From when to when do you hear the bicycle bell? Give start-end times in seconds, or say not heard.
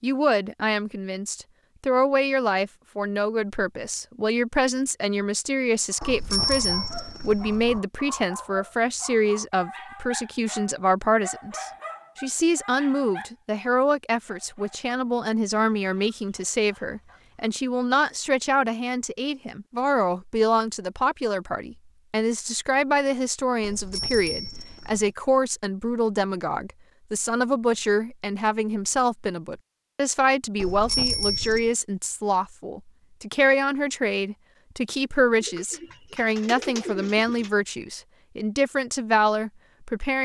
6.0-7.8, 23.6-25.1, 30.6-31.7.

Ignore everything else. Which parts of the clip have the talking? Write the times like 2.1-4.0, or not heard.
0.0-40.1.